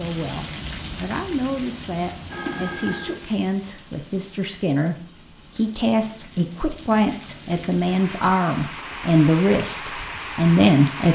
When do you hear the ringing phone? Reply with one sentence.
You can hear the ringing phone from 2.3 to 3.1 s.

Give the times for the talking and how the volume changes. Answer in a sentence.
You can hear the talking from 0.0 to 11.1 s, getting louder.